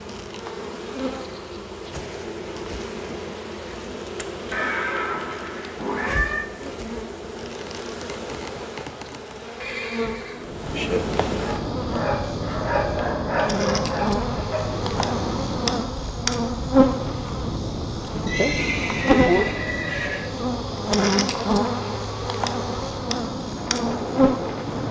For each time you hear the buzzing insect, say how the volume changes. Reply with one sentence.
The buzzing insect can be heard from 0.0 to 24.8 s, getting louder.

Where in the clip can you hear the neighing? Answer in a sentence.
You can hear the neighing from 4.5 to 6.5 s, from 9.6 to 10.4 s and from 18.2 to 20.2 s.